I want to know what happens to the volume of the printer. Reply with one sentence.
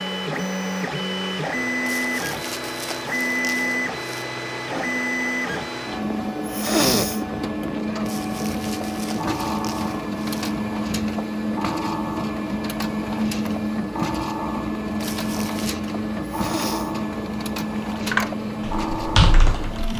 The loudness of the printer stays about the same.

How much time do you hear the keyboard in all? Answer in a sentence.
The keyboard can be heard for 2 seconds in total.